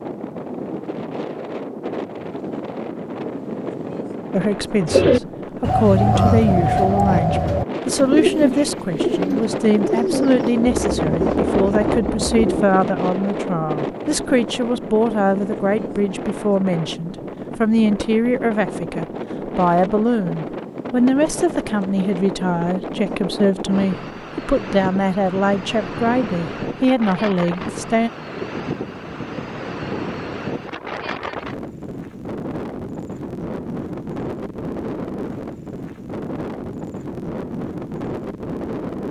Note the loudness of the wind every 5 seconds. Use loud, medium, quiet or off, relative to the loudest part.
medium, medium, loud, medium, medium, medium, medium, medium.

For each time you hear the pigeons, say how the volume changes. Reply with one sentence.
You can hear the pigeons from 4.8 to 12.6 s, getting quieter.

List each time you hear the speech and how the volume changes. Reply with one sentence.
The speech can be heard from 4.3 to 28.1 s, at a steady volume.